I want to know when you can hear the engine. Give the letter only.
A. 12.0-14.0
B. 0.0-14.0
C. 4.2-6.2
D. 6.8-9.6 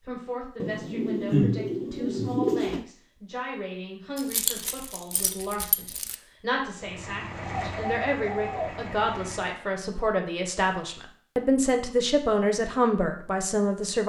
D.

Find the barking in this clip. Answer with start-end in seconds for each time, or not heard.
not heard.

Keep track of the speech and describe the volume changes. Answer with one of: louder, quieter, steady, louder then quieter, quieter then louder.
louder.